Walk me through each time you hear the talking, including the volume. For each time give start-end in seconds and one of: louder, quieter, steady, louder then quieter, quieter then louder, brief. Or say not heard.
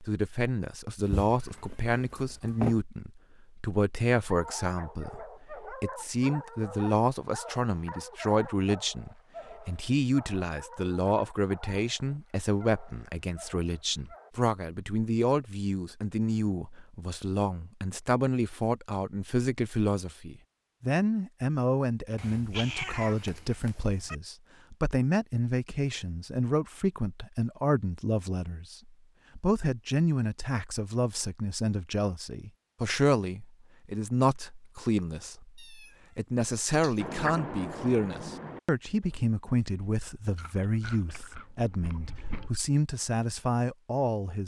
0.0-44.4 steady.